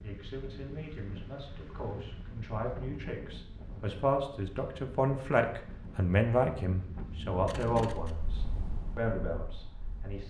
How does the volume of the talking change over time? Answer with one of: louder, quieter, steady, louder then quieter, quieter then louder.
louder then quieter.